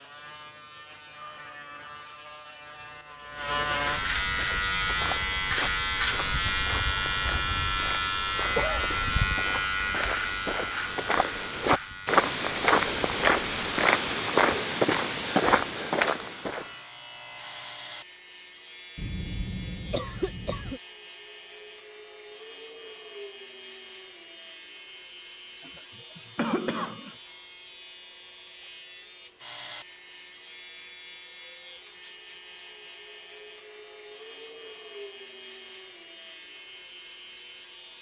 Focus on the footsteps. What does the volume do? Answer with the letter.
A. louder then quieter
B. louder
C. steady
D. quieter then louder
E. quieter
B.